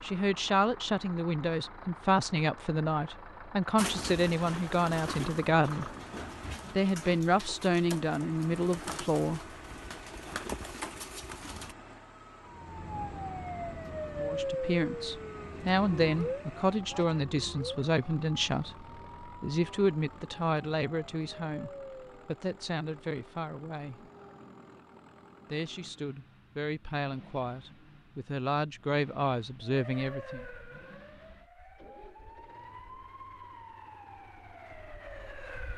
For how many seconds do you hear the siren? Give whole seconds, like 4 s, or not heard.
16 s.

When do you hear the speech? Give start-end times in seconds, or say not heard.
0.0-5.9, 6.8-9.4, 14.2-24.1, 25.4-30.4.